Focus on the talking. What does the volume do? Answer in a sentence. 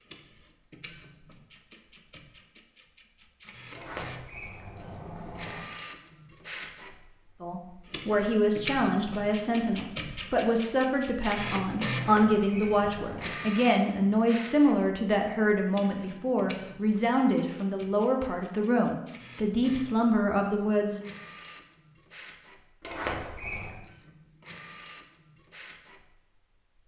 The volume of the talking stays about the same.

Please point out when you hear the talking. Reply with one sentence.
The talking can be heard from 7.4 to 21.0 s.